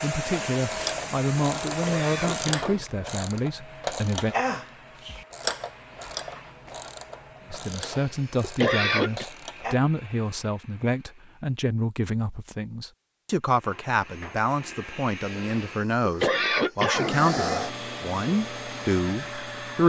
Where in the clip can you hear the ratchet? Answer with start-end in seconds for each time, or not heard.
0.5-9.8.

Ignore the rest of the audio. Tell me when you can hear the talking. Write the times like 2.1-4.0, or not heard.
0.0-4.3, 7.5-19.8.